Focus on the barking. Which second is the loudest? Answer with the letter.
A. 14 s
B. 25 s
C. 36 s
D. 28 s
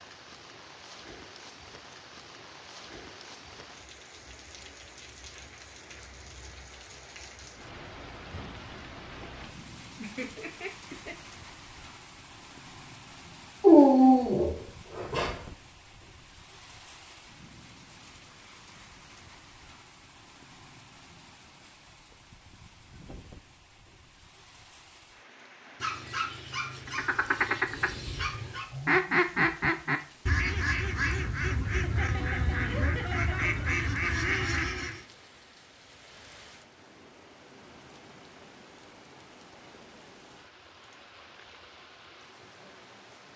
A.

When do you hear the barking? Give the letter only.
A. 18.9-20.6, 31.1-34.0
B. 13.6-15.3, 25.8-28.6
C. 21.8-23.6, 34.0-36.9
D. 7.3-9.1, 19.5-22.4
B.